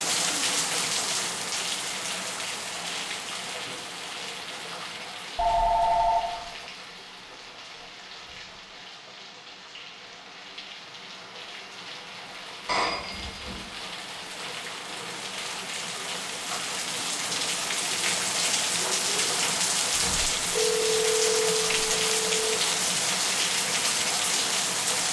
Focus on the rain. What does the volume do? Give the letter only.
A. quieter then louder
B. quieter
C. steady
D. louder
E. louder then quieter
A.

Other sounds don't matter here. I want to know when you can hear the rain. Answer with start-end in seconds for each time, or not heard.
0.0-25.0.